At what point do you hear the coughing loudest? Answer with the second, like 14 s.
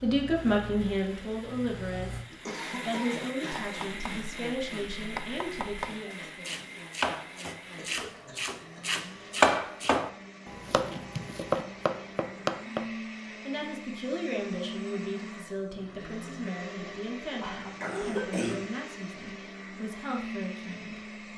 18 s.